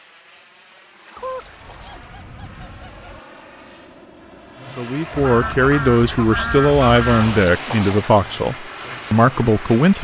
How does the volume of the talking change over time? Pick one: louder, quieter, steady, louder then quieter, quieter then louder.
steady.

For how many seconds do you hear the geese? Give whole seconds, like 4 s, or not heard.
4 s.